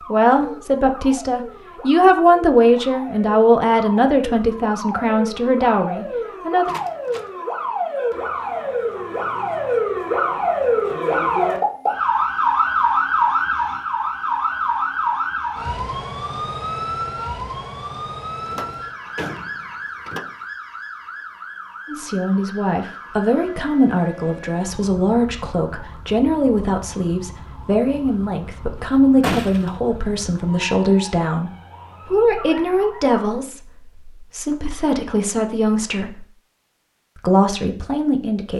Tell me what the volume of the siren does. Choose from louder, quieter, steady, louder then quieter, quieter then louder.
louder then quieter.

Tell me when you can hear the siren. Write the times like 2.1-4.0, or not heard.
0.0-33.5.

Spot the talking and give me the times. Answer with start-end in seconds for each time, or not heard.
0.1-6.8, 21.9-36.2, 37.1-38.5.